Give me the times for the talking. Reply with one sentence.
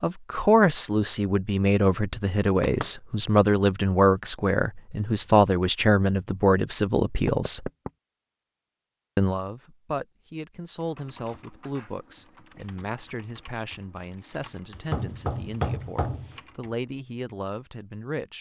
The talking can be heard from 0.0 to 7.7 s and from 9.2 to 18.3 s.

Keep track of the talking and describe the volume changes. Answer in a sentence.
The loudness of the talking goes down.